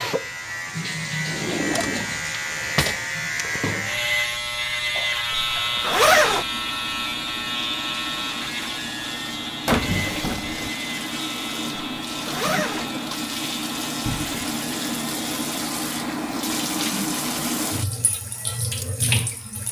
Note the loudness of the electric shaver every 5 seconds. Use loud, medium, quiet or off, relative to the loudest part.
loud, loud, medium, quiet.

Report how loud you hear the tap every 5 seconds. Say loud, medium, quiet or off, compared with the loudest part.
medium, medium, loud, loud.